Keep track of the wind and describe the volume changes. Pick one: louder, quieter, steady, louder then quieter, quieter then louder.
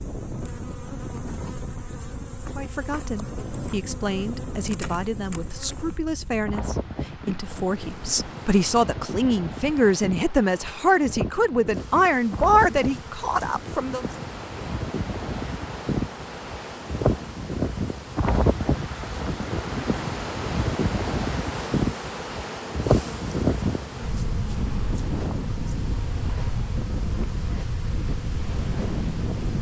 louder.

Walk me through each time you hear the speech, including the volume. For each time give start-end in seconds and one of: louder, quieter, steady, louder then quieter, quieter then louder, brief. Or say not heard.
2.5-14.1 louder.